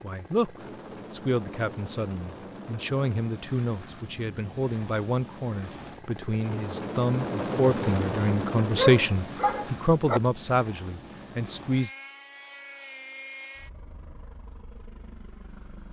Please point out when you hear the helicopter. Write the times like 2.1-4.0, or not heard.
0.0-15.8.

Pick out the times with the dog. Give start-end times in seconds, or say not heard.
8.8-10.2.